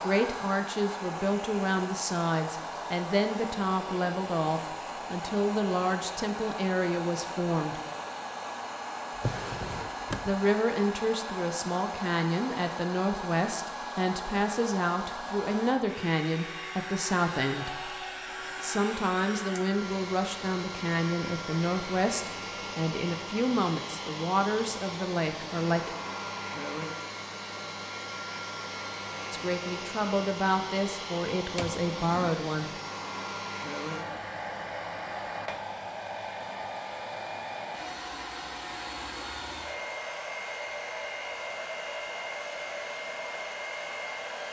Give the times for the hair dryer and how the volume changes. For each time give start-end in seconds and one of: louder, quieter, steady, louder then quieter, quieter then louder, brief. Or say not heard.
0.0-44.4 steady.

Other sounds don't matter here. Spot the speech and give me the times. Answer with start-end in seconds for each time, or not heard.
0.0-7.8, 10.2-25.9, 29.3-32.8.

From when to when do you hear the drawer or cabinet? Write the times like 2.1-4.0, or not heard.
9.2-10.3, 31.6-32.4.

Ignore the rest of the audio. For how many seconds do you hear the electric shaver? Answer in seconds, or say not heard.
not heard.